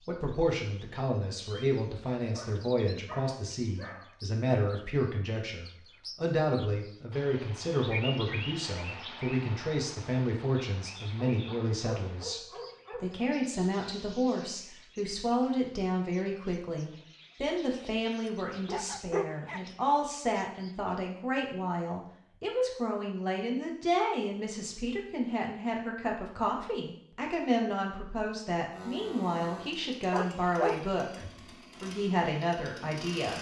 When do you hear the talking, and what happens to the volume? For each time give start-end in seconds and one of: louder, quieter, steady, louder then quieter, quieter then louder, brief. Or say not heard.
0.0-33.3 steady.